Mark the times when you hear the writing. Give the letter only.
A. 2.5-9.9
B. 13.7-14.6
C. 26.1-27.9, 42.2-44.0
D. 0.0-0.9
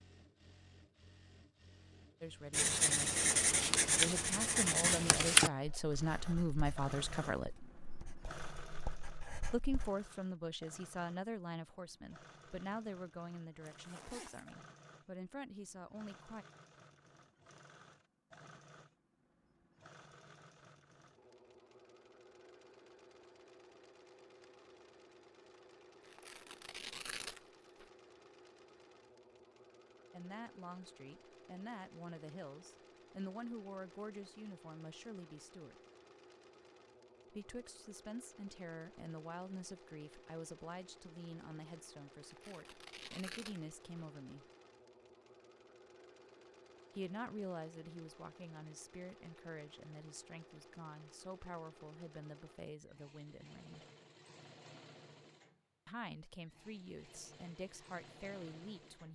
A.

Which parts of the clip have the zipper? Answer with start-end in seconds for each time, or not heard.
13.7-14.6.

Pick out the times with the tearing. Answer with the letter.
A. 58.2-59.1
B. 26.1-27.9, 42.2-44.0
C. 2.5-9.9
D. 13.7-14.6
B.